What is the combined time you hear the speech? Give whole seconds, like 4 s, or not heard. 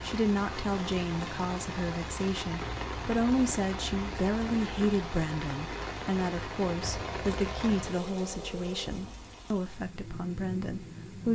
11 s.